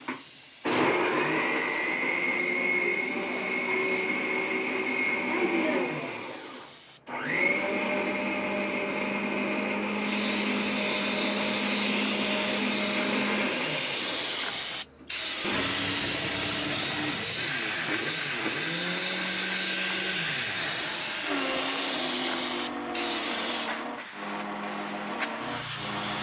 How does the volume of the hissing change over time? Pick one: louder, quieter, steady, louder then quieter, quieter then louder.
louder.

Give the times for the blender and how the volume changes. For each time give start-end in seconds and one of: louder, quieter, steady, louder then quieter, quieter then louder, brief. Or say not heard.
0.0-26.1 quieter.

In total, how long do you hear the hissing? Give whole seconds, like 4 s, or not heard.
26 s.